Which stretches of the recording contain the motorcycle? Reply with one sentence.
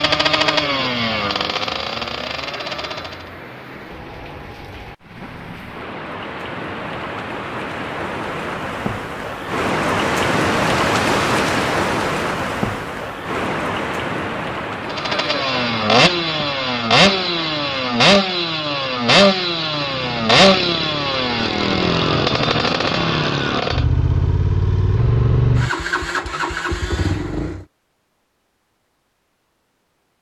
You can hear the motorcycle from 0.0 to 3.2 s and from 14.8 to 27.6 s.